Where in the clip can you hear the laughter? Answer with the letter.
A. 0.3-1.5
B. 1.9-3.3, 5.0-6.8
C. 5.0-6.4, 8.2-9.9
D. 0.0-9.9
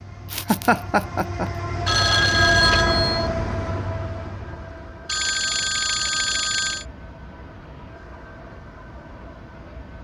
A.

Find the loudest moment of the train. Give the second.
3 s.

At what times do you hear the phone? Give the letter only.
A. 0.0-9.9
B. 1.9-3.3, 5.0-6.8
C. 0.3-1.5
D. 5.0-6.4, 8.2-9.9
B.